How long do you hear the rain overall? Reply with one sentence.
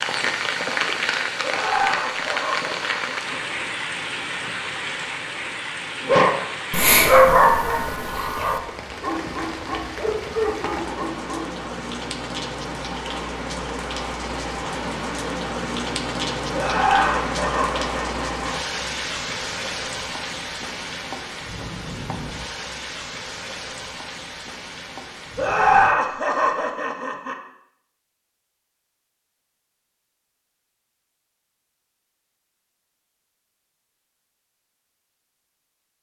You can hear the rain for 26 seconds altogether.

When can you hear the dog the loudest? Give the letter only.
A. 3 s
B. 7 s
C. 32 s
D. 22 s
B.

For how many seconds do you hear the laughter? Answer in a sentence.
You can hear the laughter for 6 seconds altogether.